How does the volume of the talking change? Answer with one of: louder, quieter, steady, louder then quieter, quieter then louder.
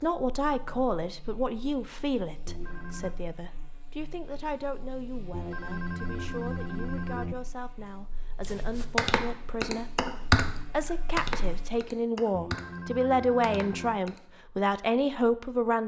quieter then louder.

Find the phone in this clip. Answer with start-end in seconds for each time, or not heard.
2.5-3.1, 5.3-7.3, 12.3-14.0.